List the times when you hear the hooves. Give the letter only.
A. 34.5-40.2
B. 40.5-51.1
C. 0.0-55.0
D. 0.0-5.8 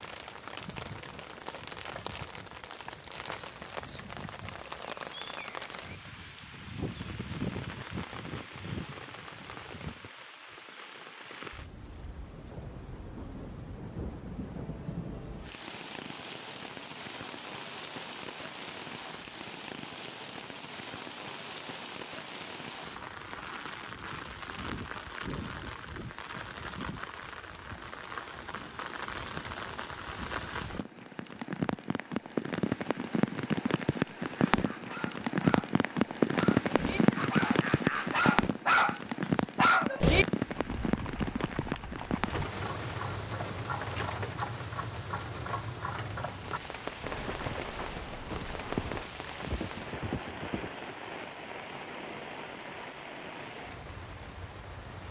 B.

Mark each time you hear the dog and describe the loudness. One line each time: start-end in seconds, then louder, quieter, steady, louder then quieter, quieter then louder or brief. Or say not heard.
34.5-40.2 louder.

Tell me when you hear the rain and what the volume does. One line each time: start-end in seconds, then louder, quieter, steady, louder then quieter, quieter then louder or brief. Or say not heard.
0.0-55.0 louder then quieter.